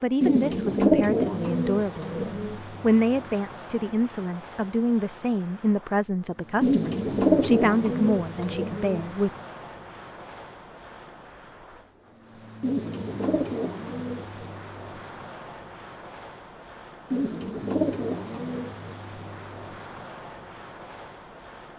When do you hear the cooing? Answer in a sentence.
The cooing can be heard from 0.2 to 2.6 s, from 6.6 to 9.1 s, from 12.6 to 14.5 s and from 17.1 to 18.9 s.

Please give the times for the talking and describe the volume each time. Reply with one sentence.
The talking can be heard briefly from 0.0 to 2.1 s; and from 2.8 to 9.3 s, at a steady volume.